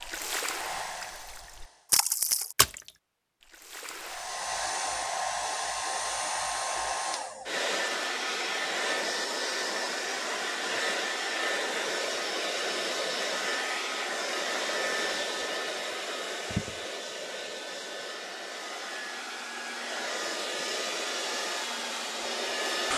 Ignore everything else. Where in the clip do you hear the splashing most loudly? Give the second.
2 s.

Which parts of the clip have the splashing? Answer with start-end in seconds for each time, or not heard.
0.0-4.4.